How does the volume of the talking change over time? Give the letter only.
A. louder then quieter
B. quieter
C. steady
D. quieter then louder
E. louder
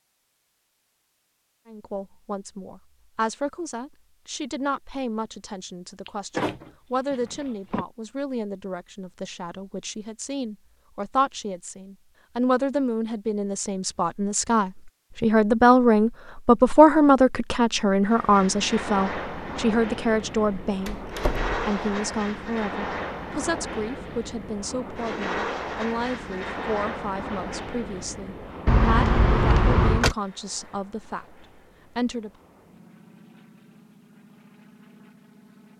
A.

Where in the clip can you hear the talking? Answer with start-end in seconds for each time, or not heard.
1.6-32.3.